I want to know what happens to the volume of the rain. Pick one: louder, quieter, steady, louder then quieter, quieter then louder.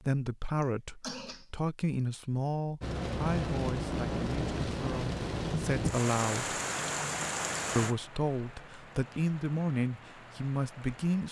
quieter.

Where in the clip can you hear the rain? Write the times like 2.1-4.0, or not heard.
2.8-11.2.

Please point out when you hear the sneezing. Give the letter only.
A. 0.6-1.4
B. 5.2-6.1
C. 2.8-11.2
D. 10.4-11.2
A.